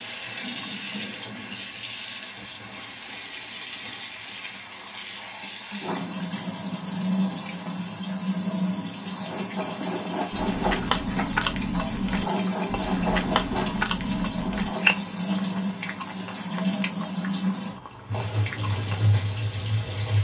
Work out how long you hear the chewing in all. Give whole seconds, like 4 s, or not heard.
9 s.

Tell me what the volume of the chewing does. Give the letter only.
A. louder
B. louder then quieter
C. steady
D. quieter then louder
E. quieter
E.